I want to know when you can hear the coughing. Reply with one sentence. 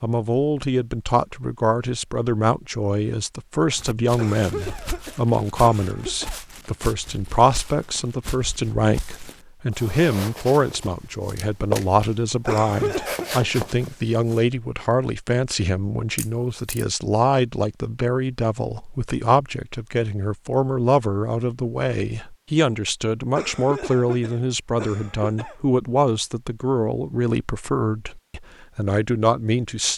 You can hear the coughing from 4.2 to 6.4 s, from 12.4 to 13.3 s and from 23.4 to 25.6 s.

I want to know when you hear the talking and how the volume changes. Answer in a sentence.
The talking can be heard from 0.0 to 29.9 s, at a steady volume.